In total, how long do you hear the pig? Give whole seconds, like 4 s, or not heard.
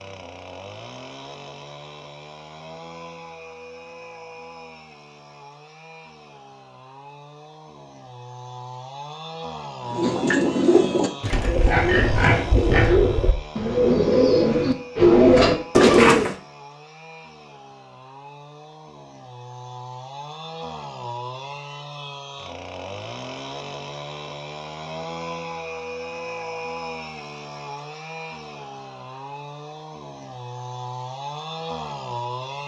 2 s.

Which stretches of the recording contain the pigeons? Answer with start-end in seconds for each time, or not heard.
9.9-16.4.